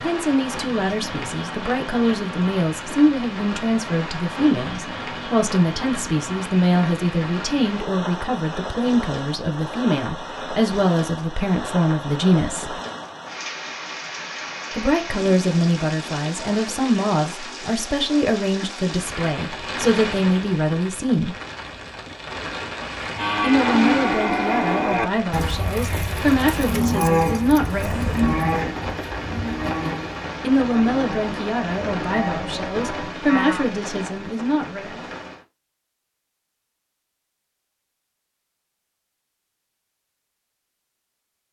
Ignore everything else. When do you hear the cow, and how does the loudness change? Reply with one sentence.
You can hear the cow from 22.9 to 33.6 s, getting quieter.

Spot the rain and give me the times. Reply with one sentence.
You can hear the rain from 0.0 to 35.5 s.